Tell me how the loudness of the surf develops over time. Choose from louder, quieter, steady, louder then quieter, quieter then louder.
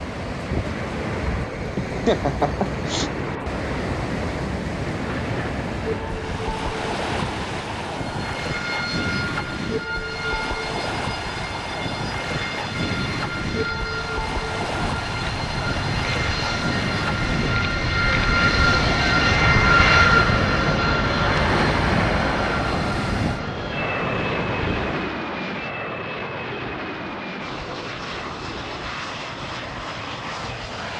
quieter.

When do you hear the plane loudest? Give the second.
20 s.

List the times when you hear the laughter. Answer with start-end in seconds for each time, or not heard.
1.8-3.1.